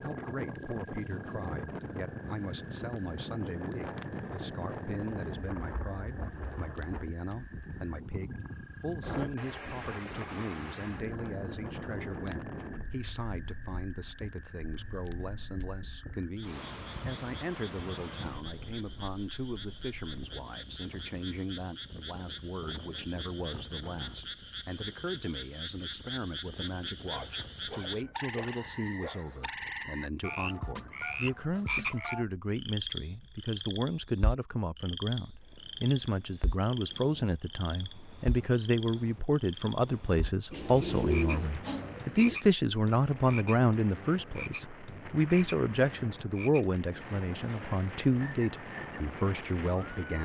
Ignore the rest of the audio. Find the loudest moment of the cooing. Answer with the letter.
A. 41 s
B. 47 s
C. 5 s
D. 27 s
A.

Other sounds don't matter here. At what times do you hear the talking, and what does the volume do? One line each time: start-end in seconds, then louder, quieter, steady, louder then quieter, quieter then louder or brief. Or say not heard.
0.0-50.2 louder.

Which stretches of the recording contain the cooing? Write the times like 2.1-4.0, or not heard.
40.5-42.4.